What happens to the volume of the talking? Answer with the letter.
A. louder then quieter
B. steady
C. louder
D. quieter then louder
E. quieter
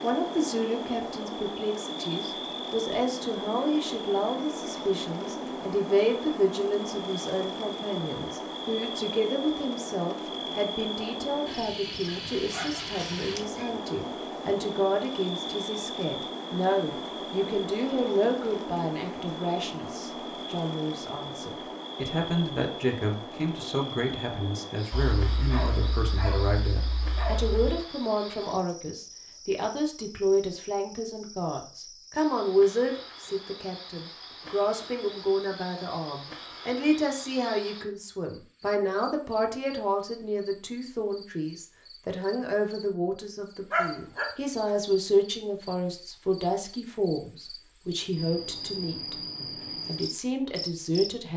B.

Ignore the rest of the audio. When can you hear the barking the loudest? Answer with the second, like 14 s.
44 s.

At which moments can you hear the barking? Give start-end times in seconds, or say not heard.
12.0-13.7, 24.9-27.8, 43.7-44.7.